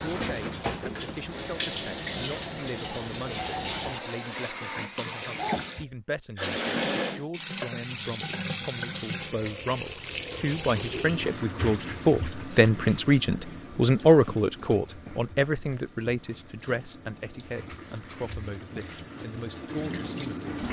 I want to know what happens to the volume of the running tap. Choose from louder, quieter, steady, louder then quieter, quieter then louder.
quieter.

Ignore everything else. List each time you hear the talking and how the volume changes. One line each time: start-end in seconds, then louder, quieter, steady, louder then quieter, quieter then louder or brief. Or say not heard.
0.0-20.4 louder then quieter.